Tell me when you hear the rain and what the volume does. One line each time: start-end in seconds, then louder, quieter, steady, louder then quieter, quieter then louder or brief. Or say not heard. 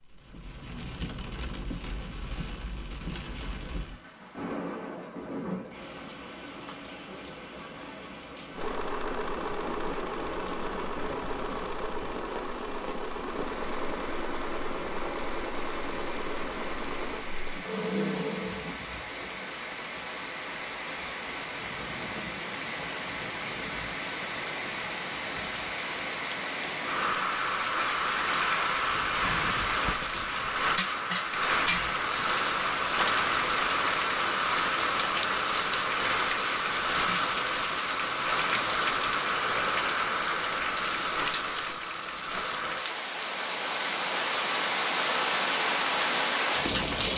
0.0-47.1 louder.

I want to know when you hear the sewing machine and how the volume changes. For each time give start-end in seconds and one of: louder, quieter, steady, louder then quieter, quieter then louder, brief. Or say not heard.
8.6-19.6 steady.